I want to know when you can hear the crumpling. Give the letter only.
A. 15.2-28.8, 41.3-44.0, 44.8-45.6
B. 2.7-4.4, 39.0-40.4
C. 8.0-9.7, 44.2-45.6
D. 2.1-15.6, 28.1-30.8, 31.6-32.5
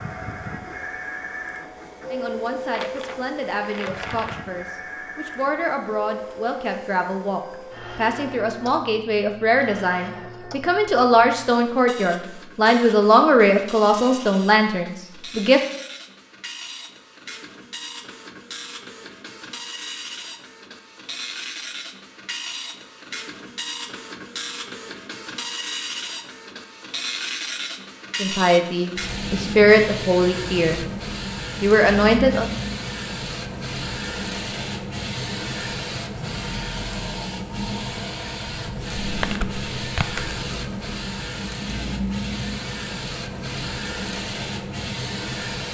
B.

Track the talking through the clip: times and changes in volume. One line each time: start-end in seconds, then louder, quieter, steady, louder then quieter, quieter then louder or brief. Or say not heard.
2.1-15.6 louder
28.1-30.8 brief
31.6-32.5 brief.